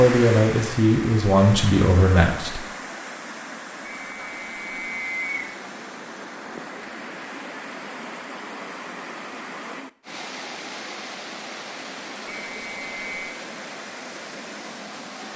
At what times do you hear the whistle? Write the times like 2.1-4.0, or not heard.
3.9-5.5, 12.2-13.2.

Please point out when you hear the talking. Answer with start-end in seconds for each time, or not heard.
0.0-2.6.